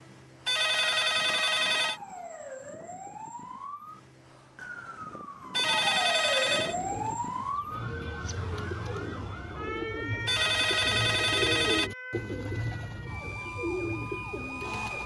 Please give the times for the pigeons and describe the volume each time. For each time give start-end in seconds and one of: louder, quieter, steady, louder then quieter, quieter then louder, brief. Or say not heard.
6.7-15.0 louder.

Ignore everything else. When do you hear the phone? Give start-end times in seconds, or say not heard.
0.5-2.0, 5.5-6.8, 10.2-11.9.